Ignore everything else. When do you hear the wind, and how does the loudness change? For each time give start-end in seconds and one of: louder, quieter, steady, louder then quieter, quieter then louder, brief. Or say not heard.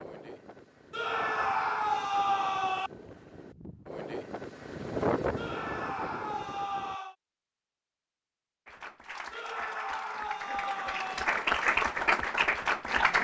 0.0-7.0 louder then quieter.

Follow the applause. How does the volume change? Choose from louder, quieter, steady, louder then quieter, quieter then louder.
louder.